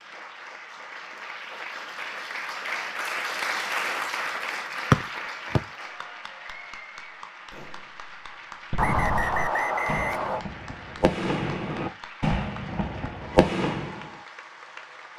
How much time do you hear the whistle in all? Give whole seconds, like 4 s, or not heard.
2 s.